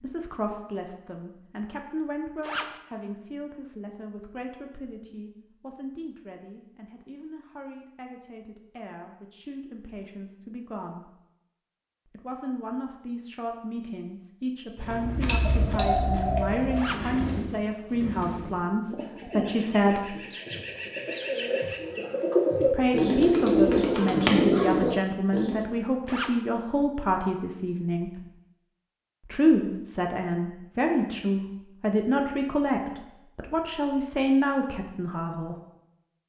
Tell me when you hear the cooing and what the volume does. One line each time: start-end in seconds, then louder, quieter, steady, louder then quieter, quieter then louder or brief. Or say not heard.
14.8-25.6 quieter then louder.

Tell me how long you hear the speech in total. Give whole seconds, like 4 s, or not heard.
31 s.